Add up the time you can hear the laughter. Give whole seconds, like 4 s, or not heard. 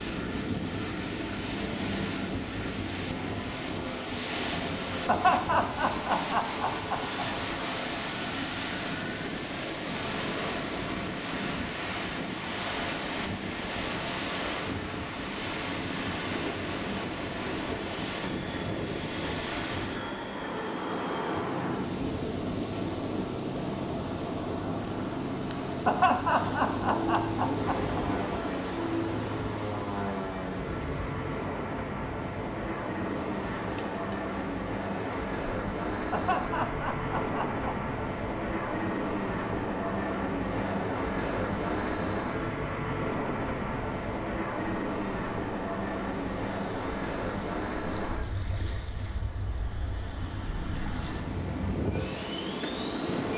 6 s.